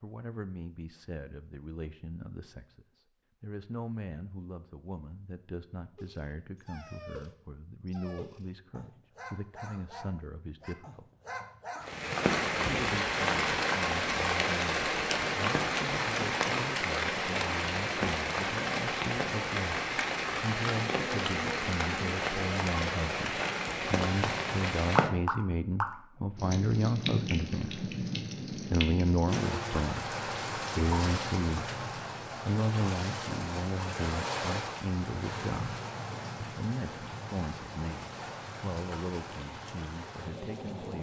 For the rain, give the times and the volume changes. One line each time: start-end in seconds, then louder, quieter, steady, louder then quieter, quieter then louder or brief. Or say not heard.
11.8-40.9 quieter.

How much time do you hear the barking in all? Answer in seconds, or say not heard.
6 s.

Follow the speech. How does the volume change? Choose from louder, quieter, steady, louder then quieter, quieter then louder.
louder then quieter.